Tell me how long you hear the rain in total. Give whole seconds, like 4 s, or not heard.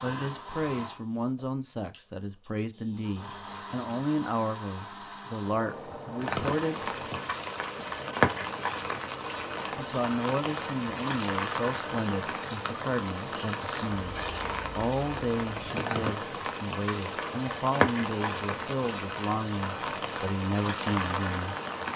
16 s.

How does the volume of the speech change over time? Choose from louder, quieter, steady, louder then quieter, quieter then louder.
steady.